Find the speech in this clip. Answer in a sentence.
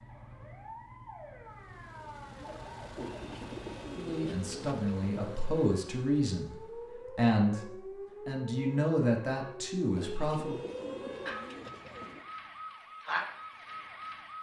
You can hear the speech from 4.0 to 10.7 s.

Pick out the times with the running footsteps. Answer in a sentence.
The running footsteps can't be heard in this clip.